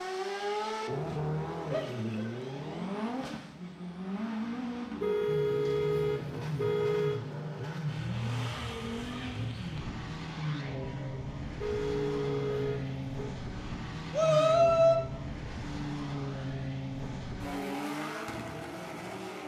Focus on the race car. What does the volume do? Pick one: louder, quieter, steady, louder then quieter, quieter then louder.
steady.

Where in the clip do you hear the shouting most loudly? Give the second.
15 s.